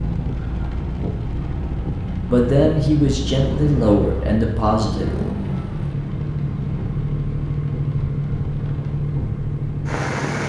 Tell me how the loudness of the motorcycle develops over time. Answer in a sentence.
The volume of the motorcycle goes up.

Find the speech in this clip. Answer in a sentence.
The speech can be heard from 2.2 to 5.0 s.